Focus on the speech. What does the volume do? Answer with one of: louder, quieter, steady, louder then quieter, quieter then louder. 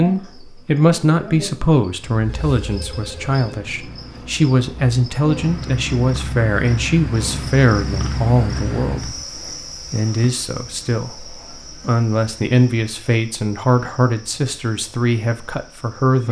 steady.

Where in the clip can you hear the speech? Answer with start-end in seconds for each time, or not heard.
0.0-16.2.